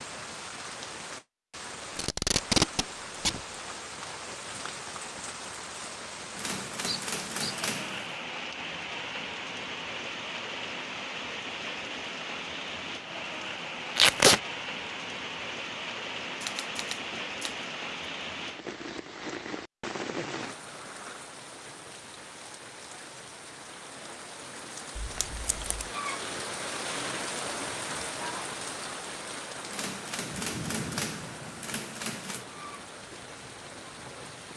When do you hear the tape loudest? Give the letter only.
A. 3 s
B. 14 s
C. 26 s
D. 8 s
B.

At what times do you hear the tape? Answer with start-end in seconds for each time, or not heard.
1.9-3.4, 13.9-14.4, 24.9-25.9.